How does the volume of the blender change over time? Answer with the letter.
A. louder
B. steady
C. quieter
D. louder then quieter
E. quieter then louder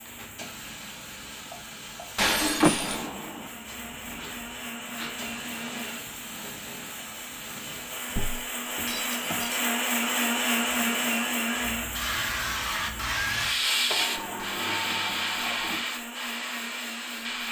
D.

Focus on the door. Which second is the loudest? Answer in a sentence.
The loudest moment of the door is at 3 seconds.